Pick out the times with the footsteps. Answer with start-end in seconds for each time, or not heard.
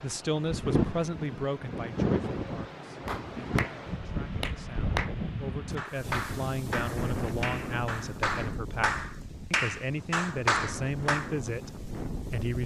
not heard.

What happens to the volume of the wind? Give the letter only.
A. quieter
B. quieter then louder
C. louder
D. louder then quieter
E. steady
A.